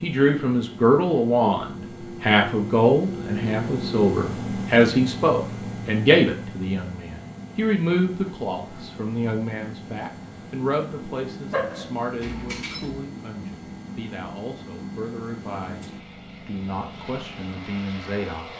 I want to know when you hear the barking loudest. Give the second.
12 s.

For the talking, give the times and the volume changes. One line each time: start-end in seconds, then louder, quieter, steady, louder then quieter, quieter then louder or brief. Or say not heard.
0.0-18.5 quieter.